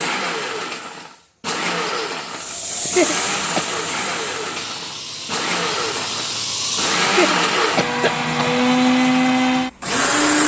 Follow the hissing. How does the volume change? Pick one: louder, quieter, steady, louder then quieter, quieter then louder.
quieter then louder.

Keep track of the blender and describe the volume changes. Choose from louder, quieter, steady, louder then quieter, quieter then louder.
louder.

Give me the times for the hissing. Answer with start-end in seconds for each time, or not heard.
2.3-7.2.